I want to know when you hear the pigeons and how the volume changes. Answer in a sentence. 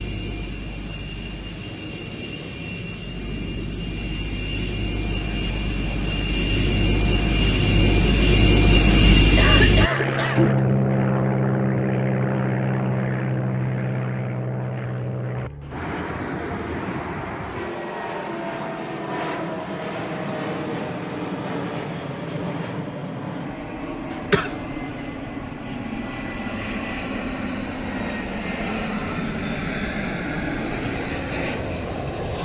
You can't hear the pigeons here.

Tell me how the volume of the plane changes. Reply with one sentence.
The volume of the plane goes up, then down.